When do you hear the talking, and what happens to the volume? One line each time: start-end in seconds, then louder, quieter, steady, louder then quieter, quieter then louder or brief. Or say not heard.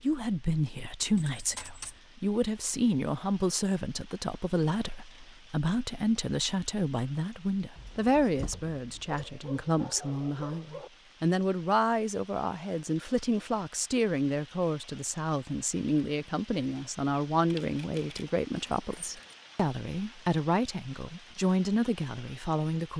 0.0-22.9 steady.